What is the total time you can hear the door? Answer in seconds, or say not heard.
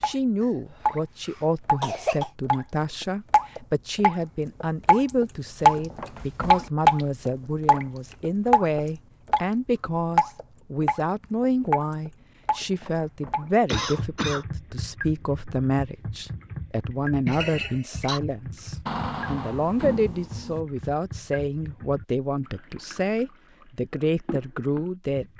2 s.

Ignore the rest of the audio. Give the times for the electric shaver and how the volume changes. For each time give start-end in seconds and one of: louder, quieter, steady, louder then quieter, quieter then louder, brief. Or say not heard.
not heard.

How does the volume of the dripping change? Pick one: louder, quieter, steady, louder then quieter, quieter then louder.
quieter.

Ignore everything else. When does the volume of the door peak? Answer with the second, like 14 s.
19 s.